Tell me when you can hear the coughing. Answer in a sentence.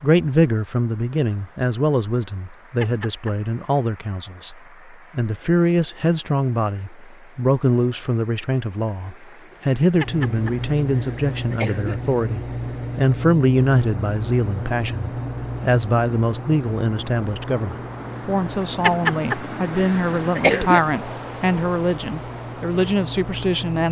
You can hear the coughing from 2.8 to 3.3 s, from 10.0 to 11.9 s and from 18.8 to 20.8 s.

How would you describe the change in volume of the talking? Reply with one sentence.
The loudness of the talking stays about the same.